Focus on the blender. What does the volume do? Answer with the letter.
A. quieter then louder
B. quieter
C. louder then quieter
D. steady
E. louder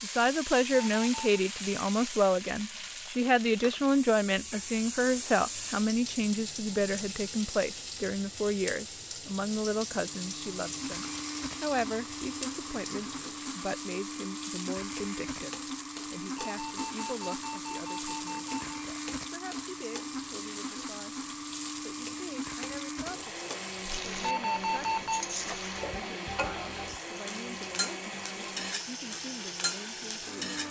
D.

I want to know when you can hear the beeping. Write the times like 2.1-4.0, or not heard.
0.7-1.3, 16.4-18.7, 24.2-25.2.